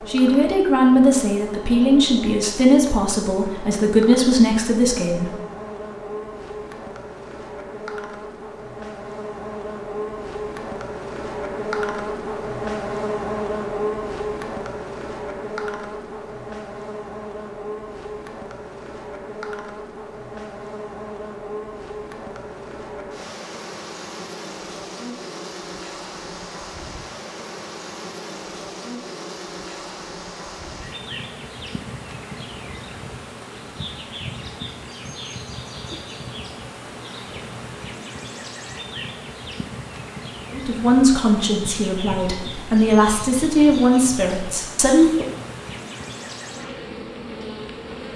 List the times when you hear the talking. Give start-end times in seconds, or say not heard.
0.1-5.4, 40.5-45.3.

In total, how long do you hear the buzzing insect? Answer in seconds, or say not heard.
48 s.